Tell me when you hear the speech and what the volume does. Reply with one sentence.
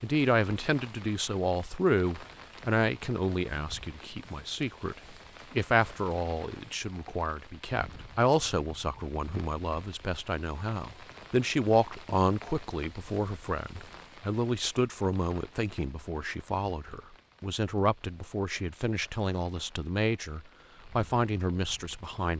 You can hear the speech from 0.0 to 22.3 s, at a steady volume.